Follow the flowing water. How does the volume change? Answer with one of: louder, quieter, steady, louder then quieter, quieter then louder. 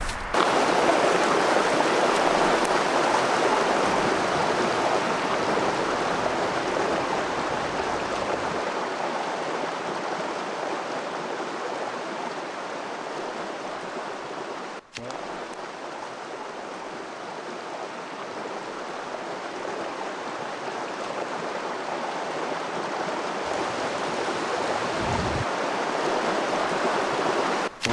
quieter then louder.